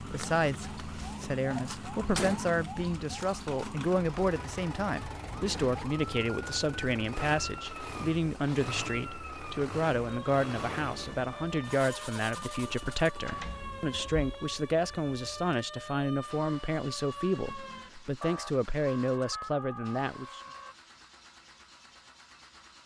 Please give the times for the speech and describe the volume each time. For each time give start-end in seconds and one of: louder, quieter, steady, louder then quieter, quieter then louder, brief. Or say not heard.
0.0-20.4 steady.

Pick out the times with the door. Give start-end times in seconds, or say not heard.
1.4-2.4, 12.8-14.3.